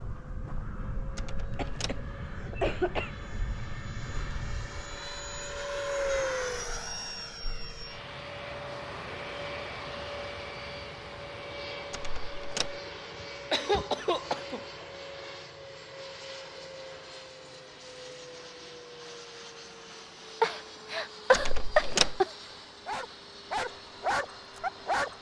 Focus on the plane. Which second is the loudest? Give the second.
6 s.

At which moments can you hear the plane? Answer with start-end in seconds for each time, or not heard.
0.0-25.1.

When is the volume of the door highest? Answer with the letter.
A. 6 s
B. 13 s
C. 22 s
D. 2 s
C.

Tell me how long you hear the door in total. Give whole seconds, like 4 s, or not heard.
3 s.